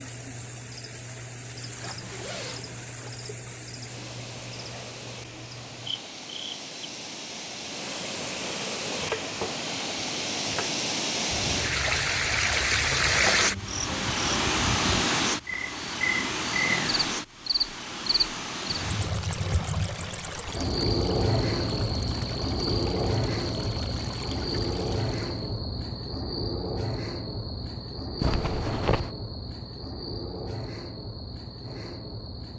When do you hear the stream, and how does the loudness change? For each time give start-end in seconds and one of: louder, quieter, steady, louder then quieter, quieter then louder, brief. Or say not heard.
0.0-25.6 louder then quieter.